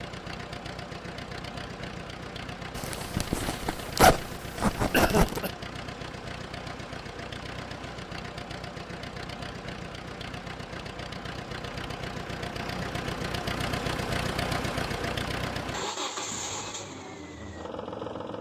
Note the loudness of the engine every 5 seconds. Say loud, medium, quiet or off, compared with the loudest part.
medium, medium, loud, loud.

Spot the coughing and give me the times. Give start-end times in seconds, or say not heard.
4.9-5.5.